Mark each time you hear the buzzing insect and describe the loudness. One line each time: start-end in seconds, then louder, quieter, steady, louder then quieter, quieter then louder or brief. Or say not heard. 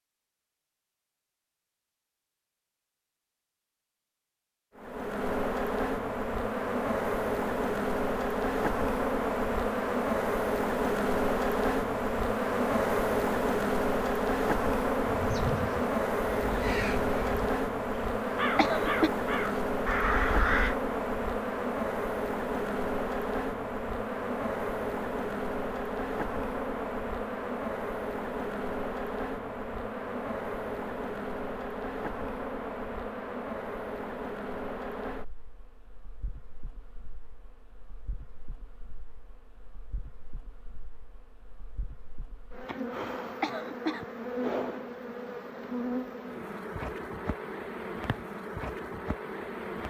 4.8-49.8 quieter.